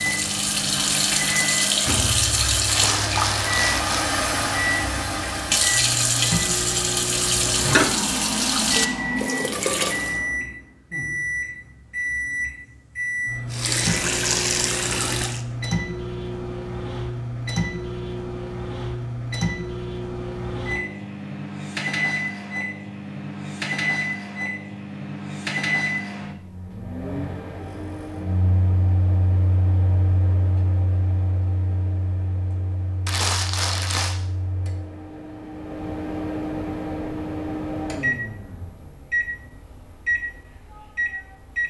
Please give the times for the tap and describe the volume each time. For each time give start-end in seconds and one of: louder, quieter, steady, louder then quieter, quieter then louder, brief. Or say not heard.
0.0-10.2 steady
13.5-15.4 brief.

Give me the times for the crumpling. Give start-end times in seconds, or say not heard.
2.6-4.2, 33.0-34.1.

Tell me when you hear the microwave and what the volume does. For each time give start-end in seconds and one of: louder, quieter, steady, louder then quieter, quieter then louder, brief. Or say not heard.
0.0-41.6 steady.